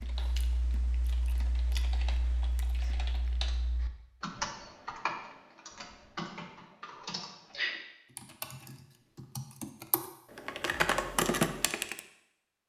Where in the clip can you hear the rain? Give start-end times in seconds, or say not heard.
not heard.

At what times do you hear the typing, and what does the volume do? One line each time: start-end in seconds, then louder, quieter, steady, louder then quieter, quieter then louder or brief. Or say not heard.
0.0-12.0 louder.